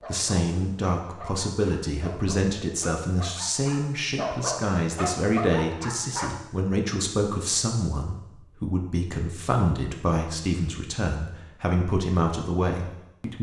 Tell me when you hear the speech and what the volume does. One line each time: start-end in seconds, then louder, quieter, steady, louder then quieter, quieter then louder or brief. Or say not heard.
0.1-13.3 steady.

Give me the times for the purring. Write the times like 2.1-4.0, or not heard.
not heard.